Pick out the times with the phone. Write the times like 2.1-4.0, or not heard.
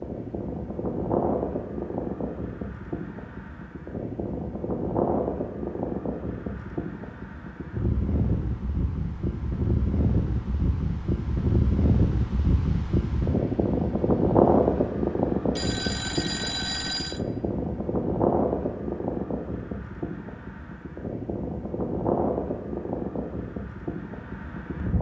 15.6-17.2.